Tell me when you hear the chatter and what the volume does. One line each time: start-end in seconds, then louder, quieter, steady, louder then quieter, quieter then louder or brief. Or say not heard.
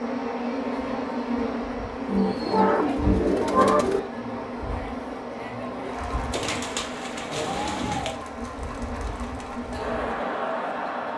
0.1-11.1 louder.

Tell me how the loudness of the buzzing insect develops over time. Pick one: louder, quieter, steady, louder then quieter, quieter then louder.
quieter.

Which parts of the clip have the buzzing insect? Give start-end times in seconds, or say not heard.
0.0-11.1.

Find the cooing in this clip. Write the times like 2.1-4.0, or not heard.
2.0-4.0, 6.3-8.2.